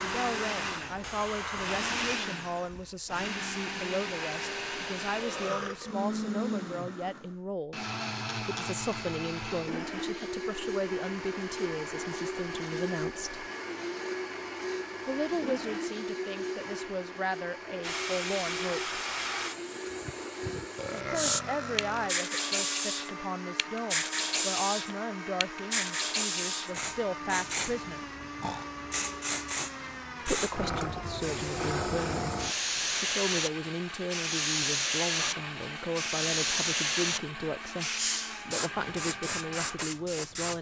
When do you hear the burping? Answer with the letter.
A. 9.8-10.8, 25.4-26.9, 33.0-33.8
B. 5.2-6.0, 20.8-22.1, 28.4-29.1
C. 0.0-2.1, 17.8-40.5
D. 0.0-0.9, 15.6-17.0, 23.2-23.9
B.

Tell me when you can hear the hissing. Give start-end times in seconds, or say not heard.
0.0-2.1, 17.8-40.5.